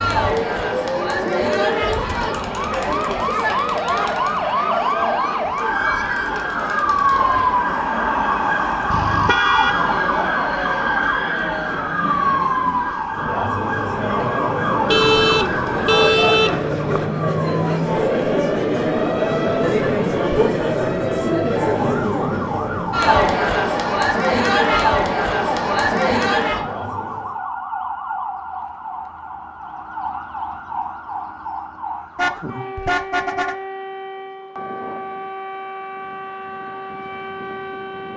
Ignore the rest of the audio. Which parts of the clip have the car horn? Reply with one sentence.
You can hear the car horn from 8.9 to 9.8 s, from 14.8 to 17.1 s and from 32.1 to 33.5 s.